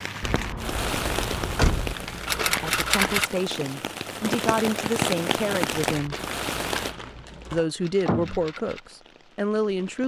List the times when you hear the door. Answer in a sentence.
The door can be heard from 0.2 to 1.9 s and from 7.0 to 8.4 s.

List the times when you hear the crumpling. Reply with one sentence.
The crumpling can be heard from 1.9 to 3.2 s and from 5.9 to 7.6 s.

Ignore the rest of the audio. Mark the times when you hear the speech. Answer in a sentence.
The speech can be heard from 2.4 to 6.2 s and from 7.5 to 10.0 s.